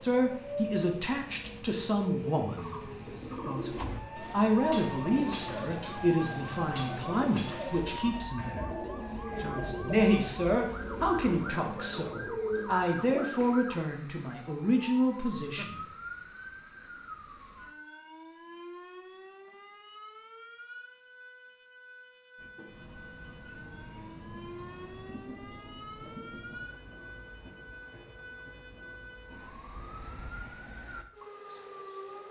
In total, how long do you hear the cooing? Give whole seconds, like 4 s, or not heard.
11 s.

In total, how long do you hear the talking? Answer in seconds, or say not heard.
16 s.